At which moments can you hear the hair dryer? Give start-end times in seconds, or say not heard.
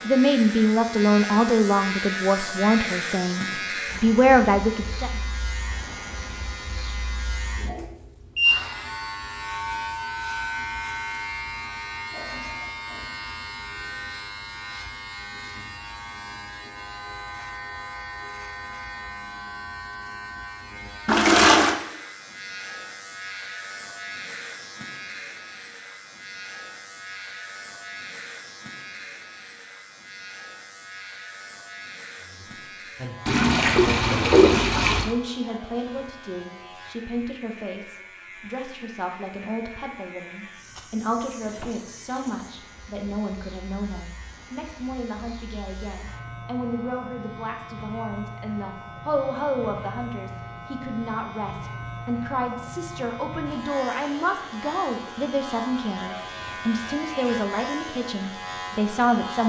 not heard.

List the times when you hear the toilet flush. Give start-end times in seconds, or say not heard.
21.1-21.8, 33.2-35.1.